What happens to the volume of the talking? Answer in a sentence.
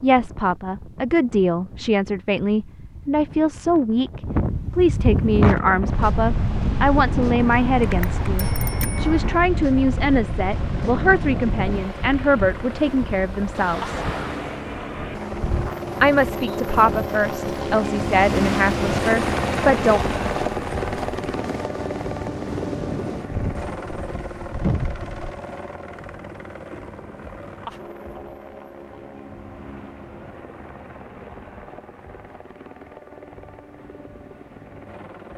The volume of the talking stays about the same.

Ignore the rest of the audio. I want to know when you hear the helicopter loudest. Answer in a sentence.
The loudest moment of the helicopter is at 19 seconds.